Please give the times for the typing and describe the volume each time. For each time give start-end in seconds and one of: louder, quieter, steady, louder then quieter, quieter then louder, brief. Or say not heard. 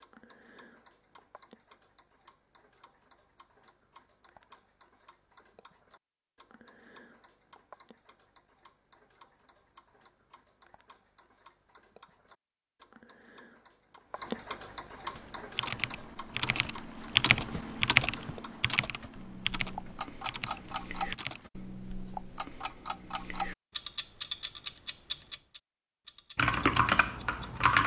15.2-21.5 louder then quieter
26.4-27.8 brief.